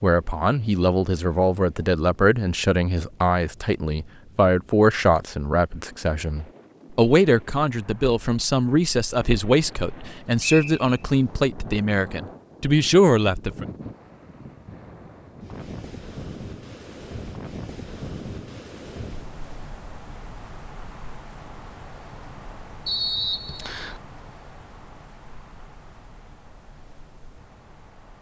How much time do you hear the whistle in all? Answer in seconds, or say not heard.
2 s.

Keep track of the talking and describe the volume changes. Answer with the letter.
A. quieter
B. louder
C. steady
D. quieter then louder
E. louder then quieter
C.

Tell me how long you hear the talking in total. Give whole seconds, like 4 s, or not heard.
14 s.